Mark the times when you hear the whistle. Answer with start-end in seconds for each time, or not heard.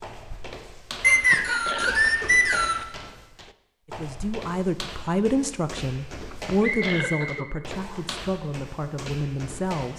1.0-2.9, 6.6-8.1.